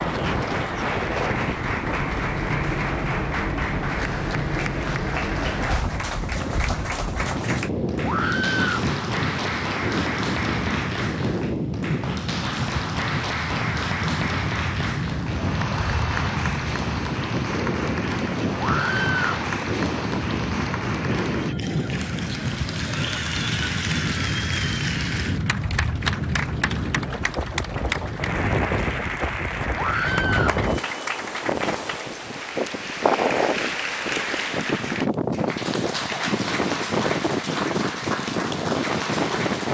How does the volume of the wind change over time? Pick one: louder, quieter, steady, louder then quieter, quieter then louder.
steady.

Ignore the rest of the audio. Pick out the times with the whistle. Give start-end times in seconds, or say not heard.
not heard.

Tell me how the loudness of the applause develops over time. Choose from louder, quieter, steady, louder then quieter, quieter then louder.
steady.